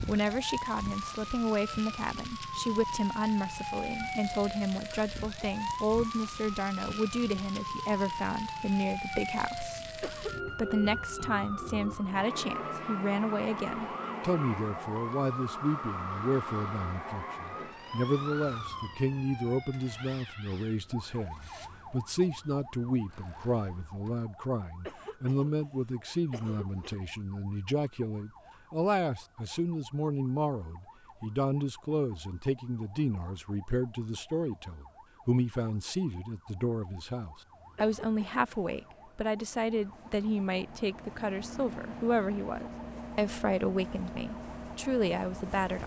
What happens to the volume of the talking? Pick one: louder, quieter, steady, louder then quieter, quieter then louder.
steady.